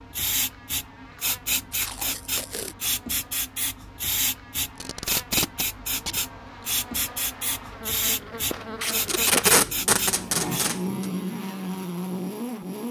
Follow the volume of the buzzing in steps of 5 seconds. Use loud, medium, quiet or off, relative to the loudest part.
quiet, medium, loud.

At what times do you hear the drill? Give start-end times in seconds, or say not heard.
not heard.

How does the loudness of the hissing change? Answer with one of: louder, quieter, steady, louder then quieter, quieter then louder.
steady.